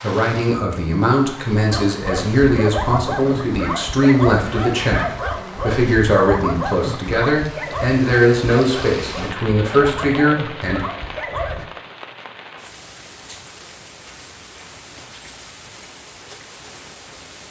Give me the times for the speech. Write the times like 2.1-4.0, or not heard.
0.0-10.8.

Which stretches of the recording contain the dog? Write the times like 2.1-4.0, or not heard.
1.7-11.7.